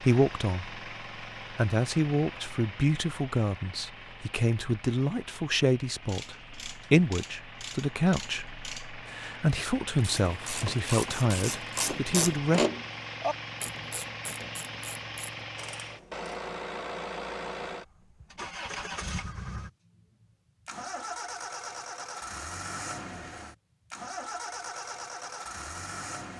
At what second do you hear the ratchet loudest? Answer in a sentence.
The loudest moment of the ratchet is at 13 seconds.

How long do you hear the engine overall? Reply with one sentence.
You can hear the engine for 26 seconds altogether.